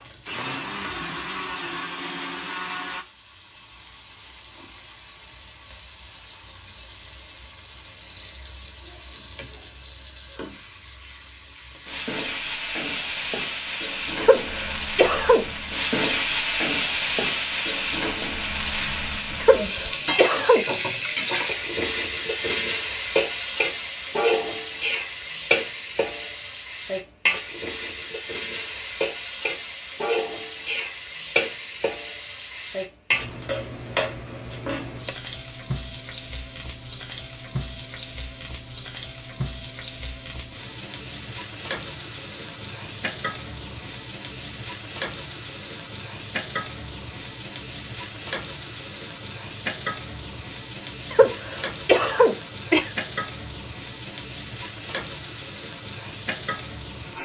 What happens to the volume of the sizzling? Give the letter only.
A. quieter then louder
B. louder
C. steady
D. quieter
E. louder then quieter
E.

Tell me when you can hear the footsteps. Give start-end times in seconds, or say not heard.
not heard.